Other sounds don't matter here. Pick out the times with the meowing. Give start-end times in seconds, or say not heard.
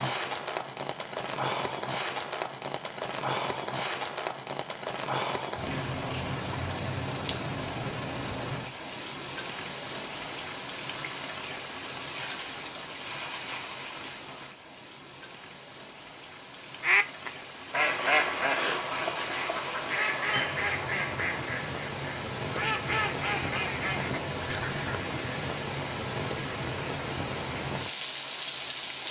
not heard.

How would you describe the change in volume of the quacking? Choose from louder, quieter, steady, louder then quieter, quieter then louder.
quieter.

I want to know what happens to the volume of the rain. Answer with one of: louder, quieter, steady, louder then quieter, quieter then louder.
quieter then louder.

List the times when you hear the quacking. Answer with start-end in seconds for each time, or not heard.
16.8-24.9.